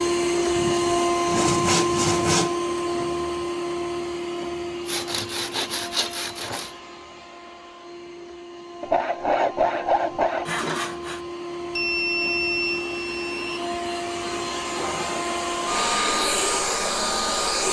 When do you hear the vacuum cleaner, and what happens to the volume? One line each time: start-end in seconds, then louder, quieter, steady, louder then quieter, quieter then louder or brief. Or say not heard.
0.0-17.6 quieter then louder.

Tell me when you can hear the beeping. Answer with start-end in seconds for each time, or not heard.
11.8-13.6.